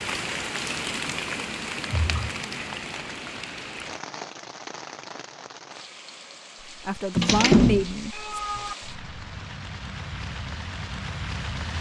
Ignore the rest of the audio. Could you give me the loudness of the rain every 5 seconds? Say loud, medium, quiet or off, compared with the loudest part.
loud, medium, loud.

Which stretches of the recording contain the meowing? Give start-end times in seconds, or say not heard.
1.9-2.4, 7.2-8.8.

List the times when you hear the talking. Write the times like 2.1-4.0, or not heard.
6.7-8.3.